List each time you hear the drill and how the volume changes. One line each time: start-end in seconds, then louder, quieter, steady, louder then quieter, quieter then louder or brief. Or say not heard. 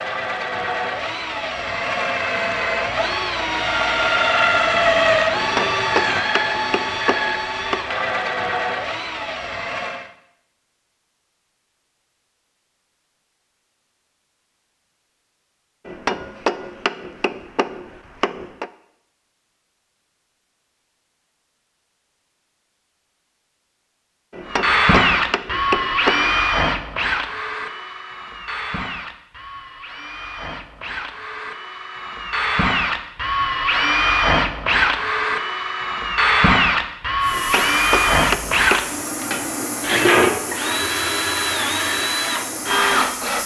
0.0-10.1 louder then quieter
24.4-43.4 quieter then louder.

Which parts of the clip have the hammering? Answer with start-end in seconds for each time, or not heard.
5.3-7.8, 15.8-18.7, 24.3-26.4, 37.3-39.0.